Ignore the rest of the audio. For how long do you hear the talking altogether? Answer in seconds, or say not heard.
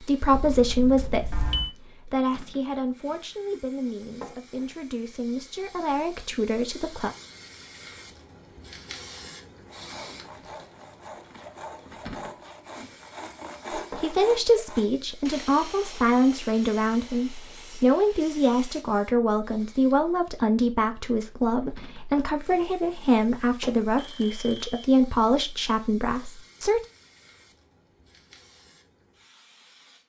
20 s.